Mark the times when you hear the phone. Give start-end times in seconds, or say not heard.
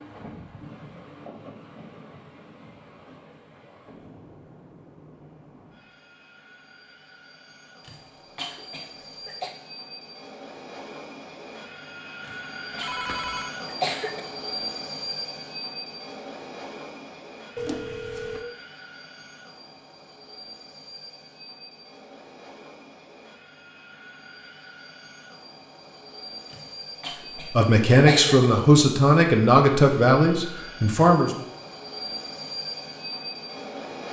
12.7-13.5, 17.6-18.4.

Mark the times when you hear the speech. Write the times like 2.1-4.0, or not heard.
27.5-31.4.